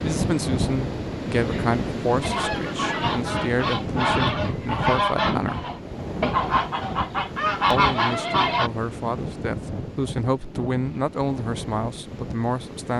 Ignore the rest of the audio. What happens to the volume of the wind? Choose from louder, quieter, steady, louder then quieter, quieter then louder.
quieter.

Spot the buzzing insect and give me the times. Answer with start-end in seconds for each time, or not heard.
not heard.